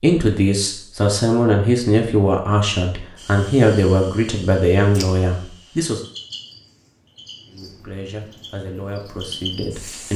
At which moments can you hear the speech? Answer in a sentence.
The speech can be heard from 0.0 to 6.0 s and from 7.5 to 10.1 s.